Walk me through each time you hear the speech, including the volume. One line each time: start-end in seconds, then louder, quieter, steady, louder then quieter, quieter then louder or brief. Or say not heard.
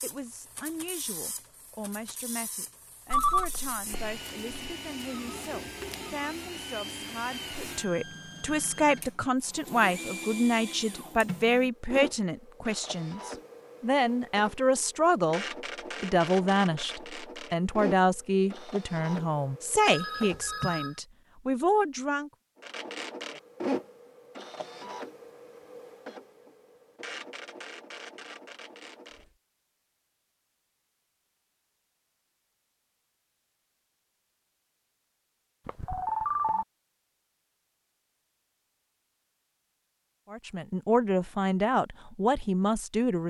0.0-22.3 louder
40.3-43.2 brief.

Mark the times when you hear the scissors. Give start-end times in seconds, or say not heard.
not heard.